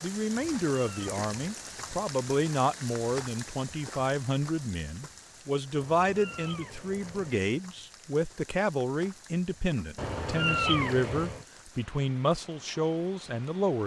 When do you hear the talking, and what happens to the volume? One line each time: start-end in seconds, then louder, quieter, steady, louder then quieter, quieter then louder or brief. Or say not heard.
0.0-13.8 steady.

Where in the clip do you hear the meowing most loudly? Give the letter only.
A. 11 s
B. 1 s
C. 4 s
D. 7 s
A.